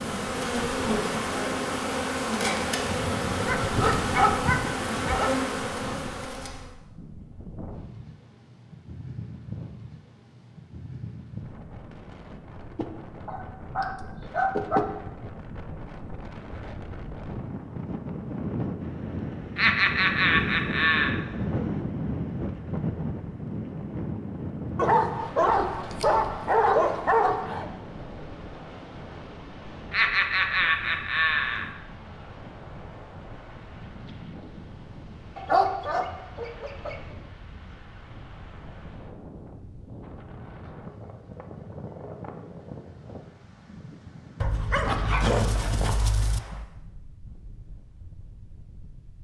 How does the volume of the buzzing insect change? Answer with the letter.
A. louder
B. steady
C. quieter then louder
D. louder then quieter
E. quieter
B.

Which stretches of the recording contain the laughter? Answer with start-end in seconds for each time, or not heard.
19.6-21.1, 29.9-31.7.